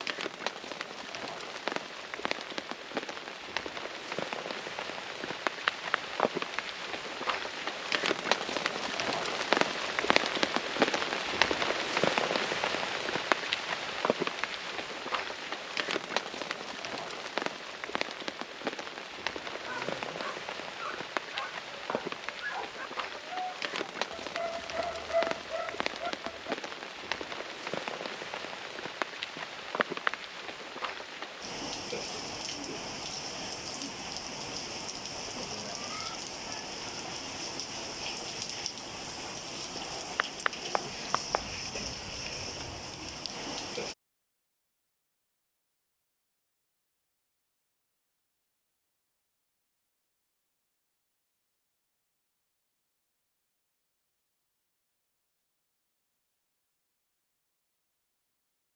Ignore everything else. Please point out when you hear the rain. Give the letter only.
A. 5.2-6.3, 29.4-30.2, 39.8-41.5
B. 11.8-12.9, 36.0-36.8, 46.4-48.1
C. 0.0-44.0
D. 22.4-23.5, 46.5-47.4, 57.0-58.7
C.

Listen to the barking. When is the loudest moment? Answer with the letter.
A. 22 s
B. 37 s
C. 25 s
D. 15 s
C.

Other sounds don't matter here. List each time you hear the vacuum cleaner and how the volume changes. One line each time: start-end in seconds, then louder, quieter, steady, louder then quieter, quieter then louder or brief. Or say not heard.
not heard.